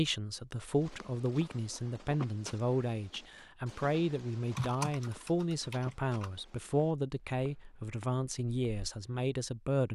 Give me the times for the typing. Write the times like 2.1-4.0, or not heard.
4.5-6.3.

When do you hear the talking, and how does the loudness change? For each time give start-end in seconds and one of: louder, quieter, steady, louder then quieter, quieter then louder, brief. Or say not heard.
0.0-9.9 steady.